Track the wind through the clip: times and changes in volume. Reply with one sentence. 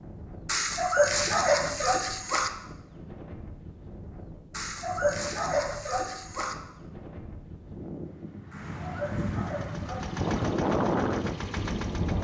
The wind can be heard from 0.0 to 12.2 s, getting louder.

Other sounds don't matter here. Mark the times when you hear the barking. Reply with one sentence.
You can hear the barking from 0.5 to 2.5 s, from 4.5 to 6.5 s and from 8.5 to 10.5 s.